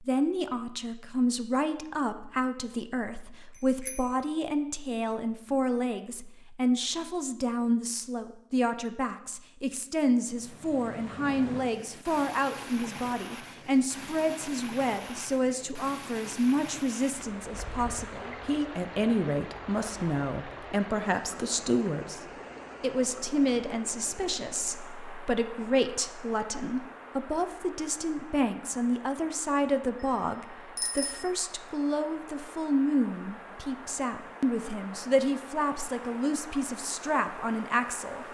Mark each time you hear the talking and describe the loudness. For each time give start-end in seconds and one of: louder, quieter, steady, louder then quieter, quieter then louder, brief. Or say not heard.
0.0-38.2 steady.